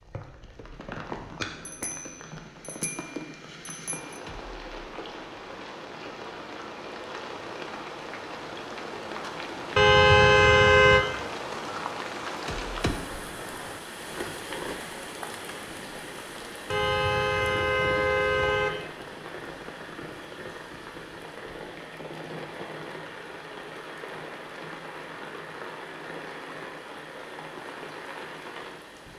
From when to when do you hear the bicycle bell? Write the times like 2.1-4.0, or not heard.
1.6-4.2.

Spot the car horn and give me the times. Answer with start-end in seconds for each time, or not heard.
9.8-11.1, 16.7-18.7.